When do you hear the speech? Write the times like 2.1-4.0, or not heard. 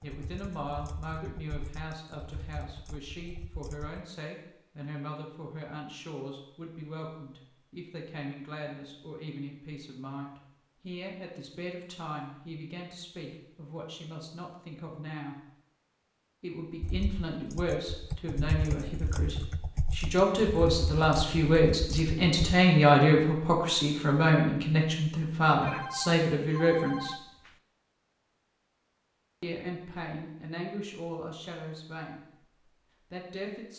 0.0-15.3, 16.4-27.1, 29.4-33.7.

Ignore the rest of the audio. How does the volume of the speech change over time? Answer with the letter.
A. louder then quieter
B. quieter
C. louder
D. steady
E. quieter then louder
A.